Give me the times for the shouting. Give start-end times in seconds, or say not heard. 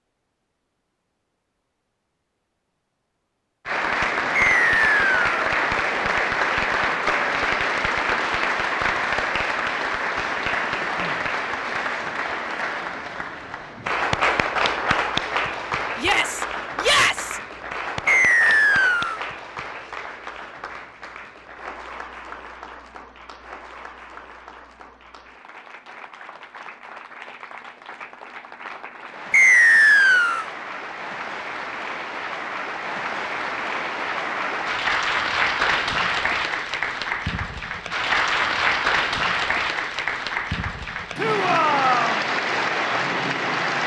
15.9-17.4, 41.1-42.2.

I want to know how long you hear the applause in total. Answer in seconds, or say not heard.
40 s.